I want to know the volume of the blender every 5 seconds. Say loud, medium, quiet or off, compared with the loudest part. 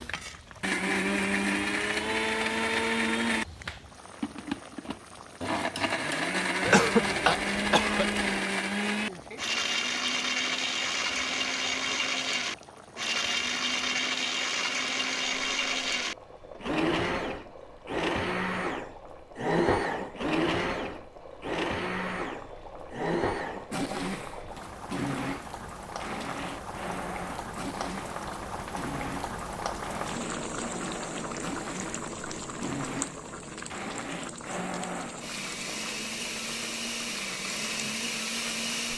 loud, loud, loud, loud, loud, medium, medium, medium.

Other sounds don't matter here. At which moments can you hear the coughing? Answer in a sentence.
The coughing can be heard from 6.6 to 8.4 s.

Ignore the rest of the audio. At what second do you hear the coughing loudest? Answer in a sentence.
The loudest moment of the coughing is at 7 seconds.